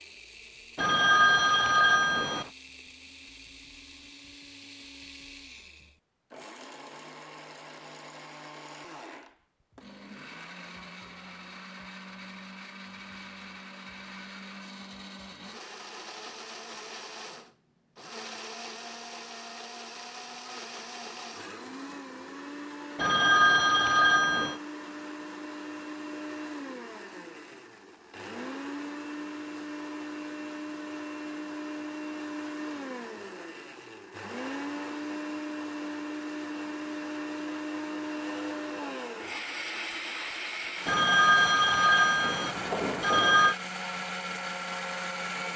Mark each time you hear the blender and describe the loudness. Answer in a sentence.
You can hear the blender from 0.0 to 45.5 s, getting louder.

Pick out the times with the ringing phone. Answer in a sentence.
The ringing phone can be heard from 0.8 to 2.5 s, from 22.9 to 24.6 s and from 40.9 to 43.5 s.